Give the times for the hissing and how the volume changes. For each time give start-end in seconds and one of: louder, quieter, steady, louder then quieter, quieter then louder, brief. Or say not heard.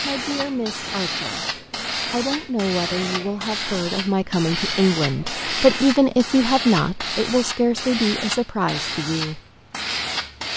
0.0-10.5 steady.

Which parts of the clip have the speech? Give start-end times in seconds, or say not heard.
0.0-9.4.